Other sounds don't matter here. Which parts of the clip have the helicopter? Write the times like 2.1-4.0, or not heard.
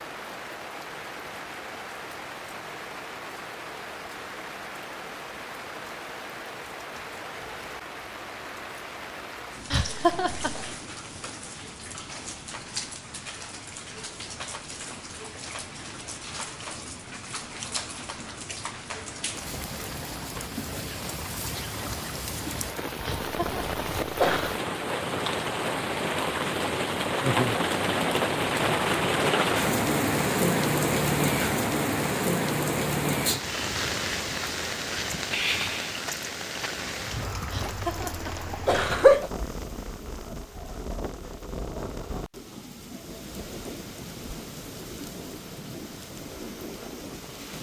not heard.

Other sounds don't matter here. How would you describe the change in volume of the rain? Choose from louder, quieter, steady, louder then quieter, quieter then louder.
louder then quieter.